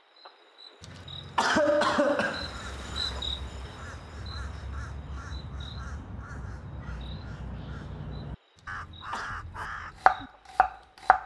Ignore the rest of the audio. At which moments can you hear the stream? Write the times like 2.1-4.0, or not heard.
not heard.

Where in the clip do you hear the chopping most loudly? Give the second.
10 s.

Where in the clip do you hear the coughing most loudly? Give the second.
2 s.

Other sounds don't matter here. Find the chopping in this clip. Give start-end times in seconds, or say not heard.
9.6-11.2.